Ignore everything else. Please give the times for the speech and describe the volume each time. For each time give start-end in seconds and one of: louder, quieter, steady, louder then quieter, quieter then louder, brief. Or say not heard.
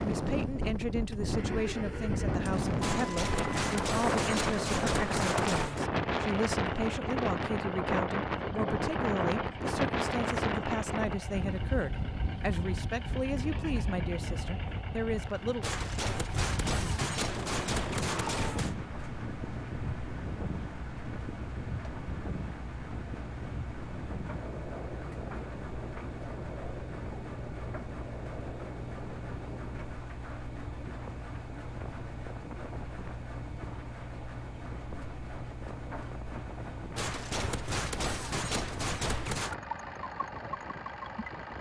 0.0-15.7 steady.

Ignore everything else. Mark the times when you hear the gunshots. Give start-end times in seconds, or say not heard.
2.8-5.8, 15.6-18.8, 37.0-39.5.